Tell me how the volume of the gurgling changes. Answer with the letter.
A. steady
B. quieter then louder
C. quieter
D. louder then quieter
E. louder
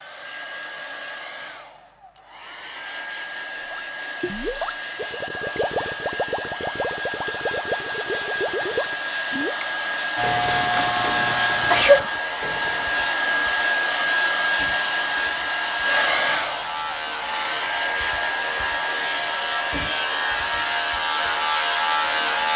C.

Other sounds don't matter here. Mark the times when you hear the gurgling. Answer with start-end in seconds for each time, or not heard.
3.7-13.1.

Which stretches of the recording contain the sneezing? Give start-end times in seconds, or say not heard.
11.7-12.1.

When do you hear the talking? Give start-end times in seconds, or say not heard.
not heard.